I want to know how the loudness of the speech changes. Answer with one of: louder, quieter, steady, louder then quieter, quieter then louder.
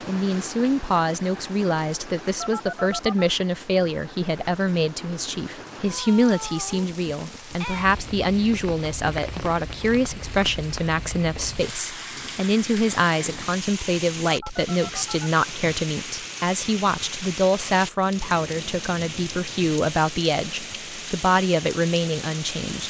steady.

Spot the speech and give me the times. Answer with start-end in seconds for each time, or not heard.
0.1-22.8.